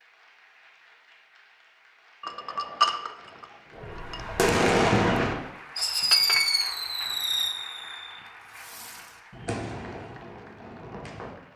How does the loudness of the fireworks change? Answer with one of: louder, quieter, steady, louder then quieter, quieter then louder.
quieter.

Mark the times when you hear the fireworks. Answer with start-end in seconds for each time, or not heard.
3.8-11.5.